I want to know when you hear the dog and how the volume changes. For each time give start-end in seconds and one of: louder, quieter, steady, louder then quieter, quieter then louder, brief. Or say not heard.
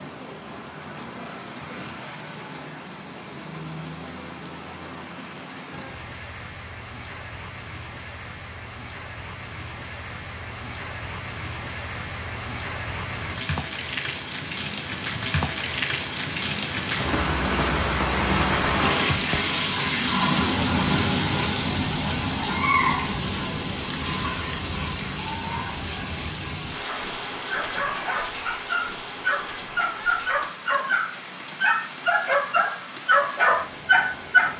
26.9-34.5 louder.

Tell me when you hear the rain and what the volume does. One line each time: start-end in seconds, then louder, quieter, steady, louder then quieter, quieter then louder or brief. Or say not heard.
0.0-34.5 louder then quieter.